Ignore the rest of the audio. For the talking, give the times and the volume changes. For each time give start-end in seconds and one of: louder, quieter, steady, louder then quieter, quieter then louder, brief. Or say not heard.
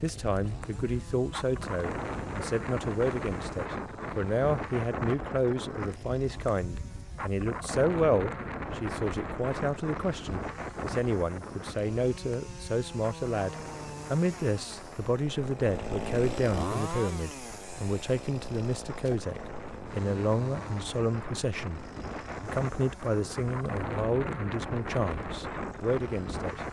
0.0-26.6 steady.